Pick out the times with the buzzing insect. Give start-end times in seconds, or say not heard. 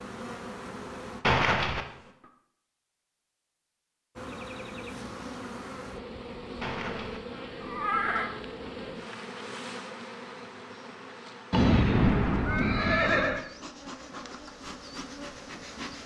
0.0-2.1, 4.2-16.0.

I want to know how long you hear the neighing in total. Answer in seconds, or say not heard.
4 s.